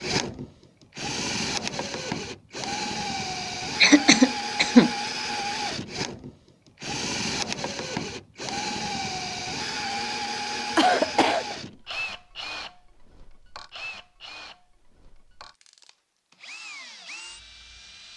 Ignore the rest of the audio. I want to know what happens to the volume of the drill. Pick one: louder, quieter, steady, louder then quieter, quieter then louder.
quieter.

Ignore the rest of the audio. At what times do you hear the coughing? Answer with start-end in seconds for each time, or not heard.
3.8-4.9, 10.8-11.6.